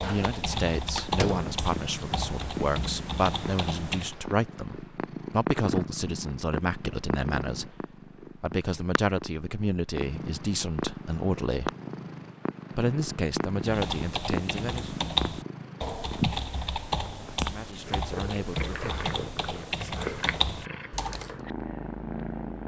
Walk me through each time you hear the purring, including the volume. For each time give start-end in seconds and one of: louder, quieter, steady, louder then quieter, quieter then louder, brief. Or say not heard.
0.0-22.6 steady.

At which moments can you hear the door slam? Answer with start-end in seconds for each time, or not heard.
0.9-1.6.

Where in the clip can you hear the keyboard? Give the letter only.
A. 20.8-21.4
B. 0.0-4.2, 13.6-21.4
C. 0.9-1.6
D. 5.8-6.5
B.